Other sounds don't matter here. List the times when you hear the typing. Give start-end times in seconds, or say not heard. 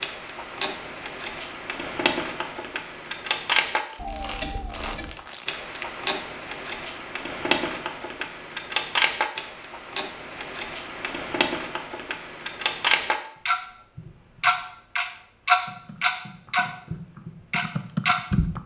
15.7-18.6.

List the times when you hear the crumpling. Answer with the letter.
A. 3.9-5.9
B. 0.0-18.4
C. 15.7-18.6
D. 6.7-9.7
A.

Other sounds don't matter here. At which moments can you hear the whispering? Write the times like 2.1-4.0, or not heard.
not heard.